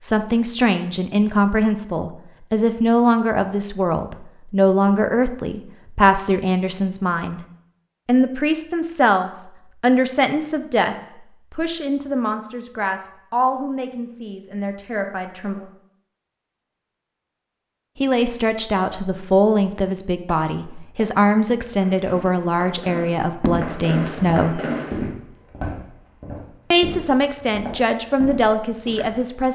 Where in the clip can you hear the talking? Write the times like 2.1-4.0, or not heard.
0.0-7.4, 8.1-15.7, 17.9-24.6, 26.7-29.5.